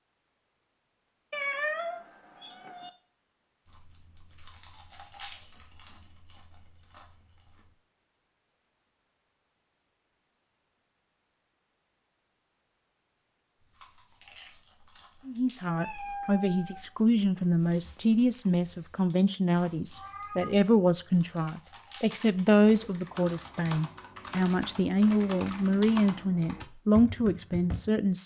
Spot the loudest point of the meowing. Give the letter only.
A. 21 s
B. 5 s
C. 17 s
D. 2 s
D.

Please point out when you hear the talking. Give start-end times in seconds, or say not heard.
15.2-28.2.